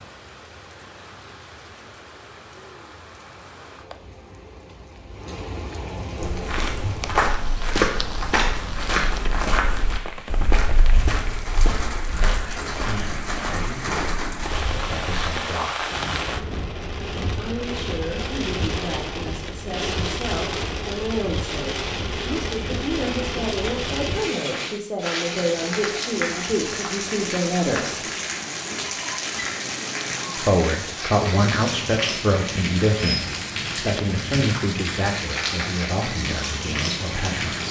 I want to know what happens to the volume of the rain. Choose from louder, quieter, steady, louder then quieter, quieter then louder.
louder.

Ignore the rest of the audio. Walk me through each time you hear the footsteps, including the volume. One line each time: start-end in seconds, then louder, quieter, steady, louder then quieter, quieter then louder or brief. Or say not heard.
6.2-15.4 quieter.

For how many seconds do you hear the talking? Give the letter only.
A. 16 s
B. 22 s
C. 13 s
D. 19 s
B.